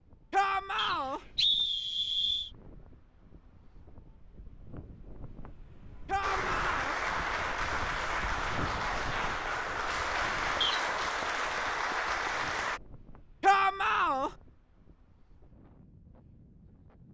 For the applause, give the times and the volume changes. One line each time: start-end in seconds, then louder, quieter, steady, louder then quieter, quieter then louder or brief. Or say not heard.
6.2-12.8 steady.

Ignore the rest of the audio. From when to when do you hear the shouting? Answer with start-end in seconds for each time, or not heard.
0.3-1.2, 6.0-7.0, 13.4-14.3.